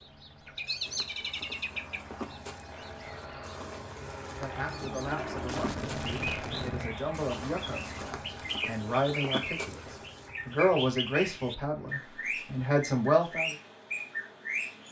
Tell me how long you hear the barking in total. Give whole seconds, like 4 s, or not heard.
not heard.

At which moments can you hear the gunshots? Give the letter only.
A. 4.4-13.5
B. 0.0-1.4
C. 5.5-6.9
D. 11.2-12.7
C.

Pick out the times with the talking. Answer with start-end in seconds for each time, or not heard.
4.4-13.5.